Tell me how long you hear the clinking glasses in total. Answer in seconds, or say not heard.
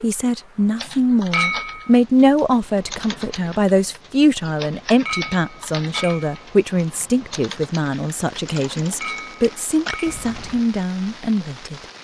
3 s.